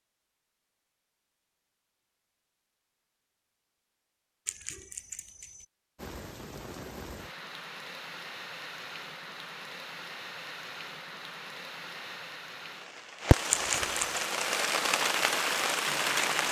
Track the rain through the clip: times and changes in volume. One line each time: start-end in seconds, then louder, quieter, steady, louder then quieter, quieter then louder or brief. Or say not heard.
6.0-16.4 louder.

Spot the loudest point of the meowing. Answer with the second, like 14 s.
14 s.